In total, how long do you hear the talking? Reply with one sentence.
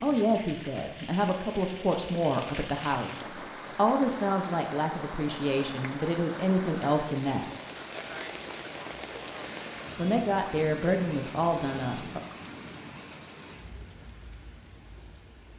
The talking can be heard for 10 seconds in total.